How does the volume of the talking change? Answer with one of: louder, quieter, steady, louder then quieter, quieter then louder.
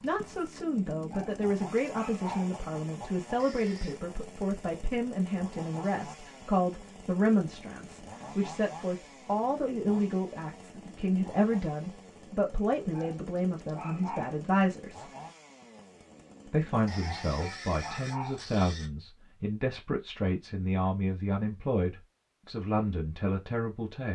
steady.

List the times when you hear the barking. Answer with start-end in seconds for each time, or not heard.
1.1-2.5, 12.9-14.3, 17.0-18.4.